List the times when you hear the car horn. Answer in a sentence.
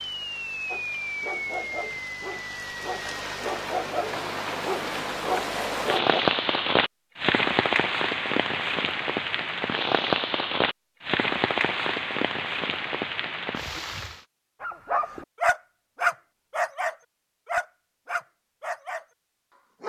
You can't hear the car horn here.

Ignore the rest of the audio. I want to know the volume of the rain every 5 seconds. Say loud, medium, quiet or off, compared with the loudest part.
medium, loud, loud, off.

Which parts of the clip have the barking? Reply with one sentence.
The barking can be heard from 0.7 to 6.2 s and from 14.6 to 19.1 s.